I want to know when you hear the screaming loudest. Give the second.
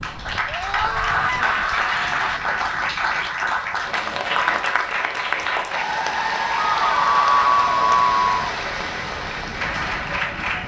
7 s.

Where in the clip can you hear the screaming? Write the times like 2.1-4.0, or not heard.
0.5-2.4, 6.8-8.3.